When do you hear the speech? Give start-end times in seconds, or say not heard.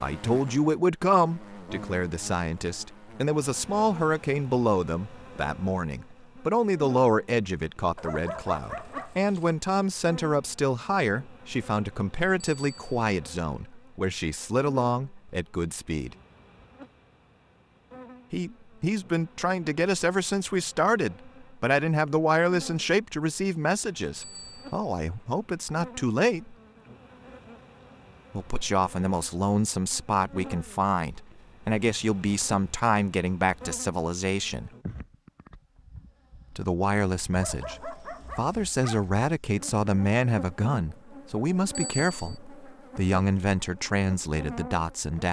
0.0-16.1, 18.3-26.6, 28.4-34.7, 36.5-45.2.